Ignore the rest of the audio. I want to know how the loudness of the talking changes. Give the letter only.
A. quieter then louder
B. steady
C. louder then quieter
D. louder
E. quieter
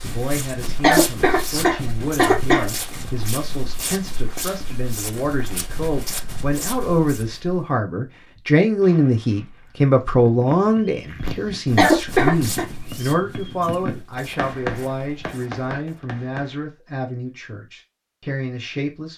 C.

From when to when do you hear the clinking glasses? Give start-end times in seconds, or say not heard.
not heard.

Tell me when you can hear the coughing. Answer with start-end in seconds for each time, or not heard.
0.8-2.7, 11.8-12.7.